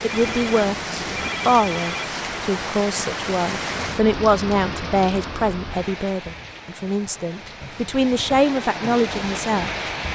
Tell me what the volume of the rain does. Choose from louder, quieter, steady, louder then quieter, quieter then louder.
quieter then louder.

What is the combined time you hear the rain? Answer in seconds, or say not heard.
10 s.